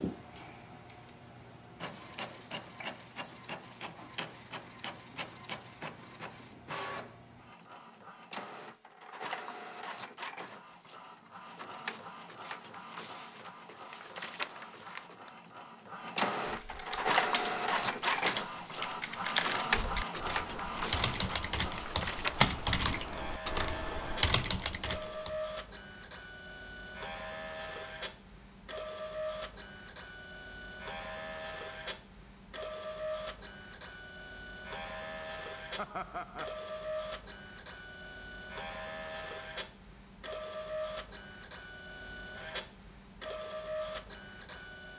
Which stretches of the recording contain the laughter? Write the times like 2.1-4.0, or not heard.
35.8-36.5.